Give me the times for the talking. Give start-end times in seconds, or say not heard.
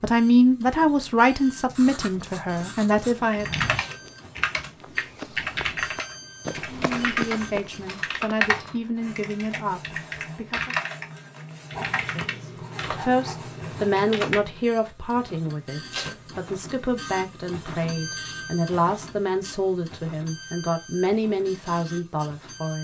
0.0-3.5, 6.7-10.8, 11.9-22.7.